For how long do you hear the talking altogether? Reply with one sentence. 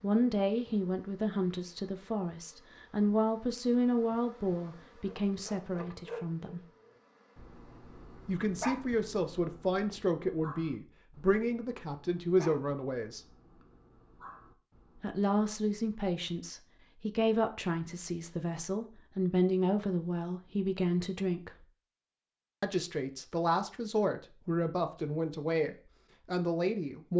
You can hear the talking for 23 seconds altogether.